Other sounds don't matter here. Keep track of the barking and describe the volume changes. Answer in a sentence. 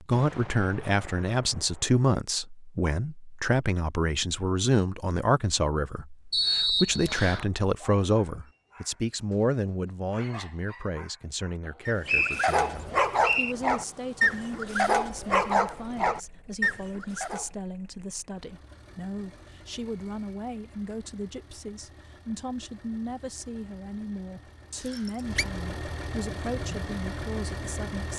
The loudness of the barking goes up.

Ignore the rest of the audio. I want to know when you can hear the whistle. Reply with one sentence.
The whistle can be heard from 6.3 to 7.5 s, from 11.7 to 13.6 s and from 24.8 to 25.4 s.